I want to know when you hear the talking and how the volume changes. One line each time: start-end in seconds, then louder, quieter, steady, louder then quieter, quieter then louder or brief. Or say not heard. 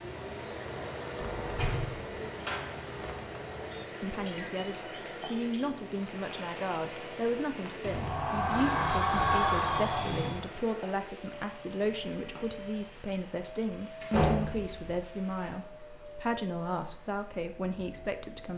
4.0-18.5 steady.